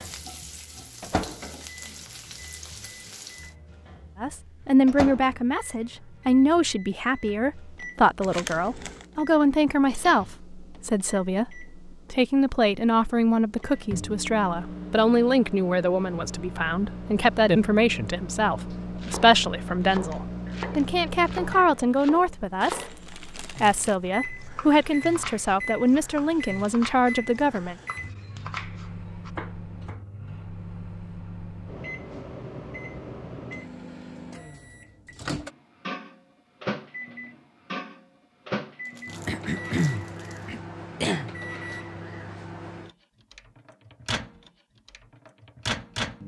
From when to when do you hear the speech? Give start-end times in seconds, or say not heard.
4.2-27.8.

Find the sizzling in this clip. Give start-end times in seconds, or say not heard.
0.0-3.5.